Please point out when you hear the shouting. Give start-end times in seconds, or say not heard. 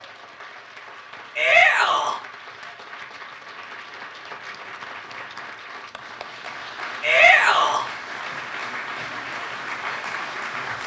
1.4-2.2, 7.0-7.8.